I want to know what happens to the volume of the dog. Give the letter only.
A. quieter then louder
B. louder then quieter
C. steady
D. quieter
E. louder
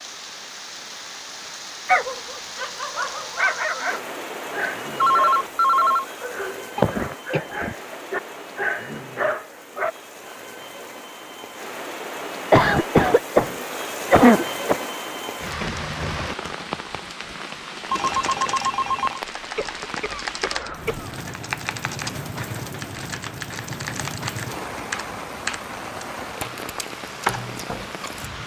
A.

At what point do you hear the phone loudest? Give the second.
5 s.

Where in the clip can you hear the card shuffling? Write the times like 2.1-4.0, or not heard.
not heard.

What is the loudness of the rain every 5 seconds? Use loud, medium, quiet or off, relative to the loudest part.
loud, medium, loud, loud, loud, loud.